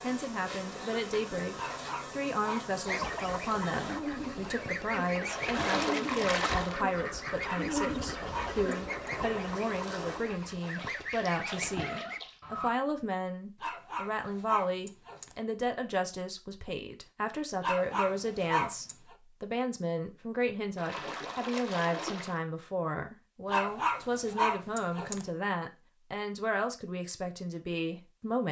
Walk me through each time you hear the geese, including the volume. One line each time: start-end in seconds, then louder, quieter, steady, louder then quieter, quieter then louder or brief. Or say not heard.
2.9-12.7 steady.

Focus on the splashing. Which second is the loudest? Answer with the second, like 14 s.
6 s.